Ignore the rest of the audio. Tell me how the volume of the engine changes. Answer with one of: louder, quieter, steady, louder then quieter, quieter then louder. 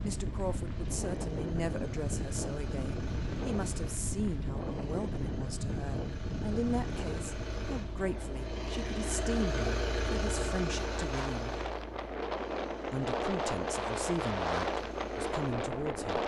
louder then quieter.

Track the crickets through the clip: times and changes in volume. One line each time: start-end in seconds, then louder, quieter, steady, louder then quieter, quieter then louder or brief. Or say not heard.
not heard.